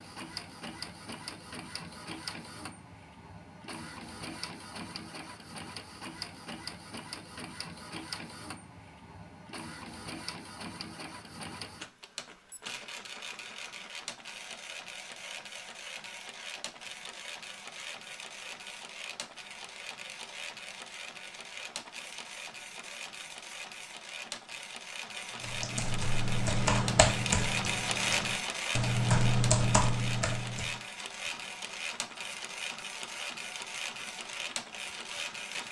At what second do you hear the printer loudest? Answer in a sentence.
The volume of the printer peaks at 28 seconds.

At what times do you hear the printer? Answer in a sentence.
You can hear the printer from 0.0 to 35.6 s.